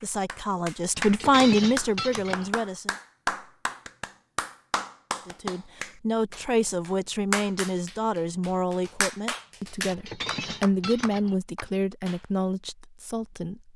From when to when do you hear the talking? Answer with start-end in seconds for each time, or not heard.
0.0-3.0, 5.2-13.7.